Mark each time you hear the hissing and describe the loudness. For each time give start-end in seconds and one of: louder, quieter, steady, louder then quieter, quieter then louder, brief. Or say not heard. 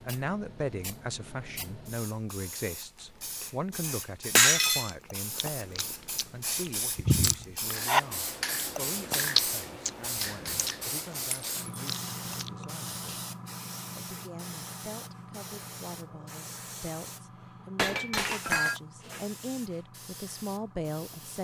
0.0-21.3 louder then quieter.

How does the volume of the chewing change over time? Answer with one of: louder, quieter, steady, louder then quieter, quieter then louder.
louder then quieter.